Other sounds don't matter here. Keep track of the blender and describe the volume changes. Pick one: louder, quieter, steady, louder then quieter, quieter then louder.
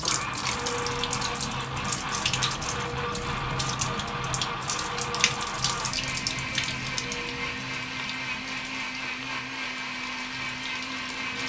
steady.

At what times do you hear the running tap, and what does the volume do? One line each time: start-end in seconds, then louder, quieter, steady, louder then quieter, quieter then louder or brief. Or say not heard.
0.0-11.4 quieter.